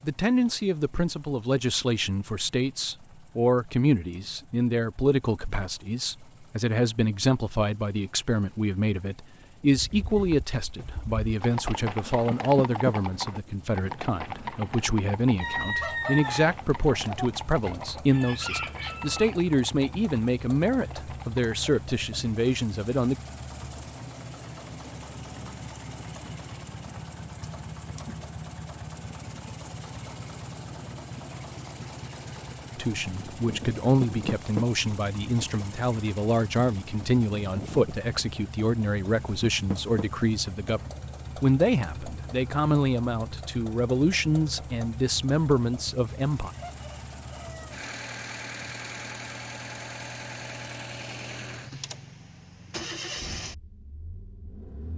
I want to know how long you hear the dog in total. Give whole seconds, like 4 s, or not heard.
not heard.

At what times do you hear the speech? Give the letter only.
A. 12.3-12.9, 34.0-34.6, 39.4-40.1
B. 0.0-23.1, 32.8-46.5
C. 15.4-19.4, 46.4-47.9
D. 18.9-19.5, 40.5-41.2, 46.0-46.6
B.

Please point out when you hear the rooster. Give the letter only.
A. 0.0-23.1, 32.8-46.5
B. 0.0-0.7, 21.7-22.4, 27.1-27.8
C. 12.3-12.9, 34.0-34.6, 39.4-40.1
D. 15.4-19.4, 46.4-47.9
D.